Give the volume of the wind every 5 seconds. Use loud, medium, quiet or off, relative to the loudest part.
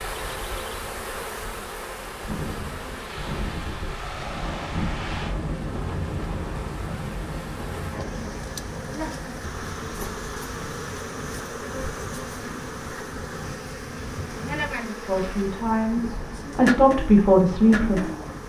loud, loud, medium, medium.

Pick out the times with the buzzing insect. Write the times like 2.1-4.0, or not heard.
0.0-18.4.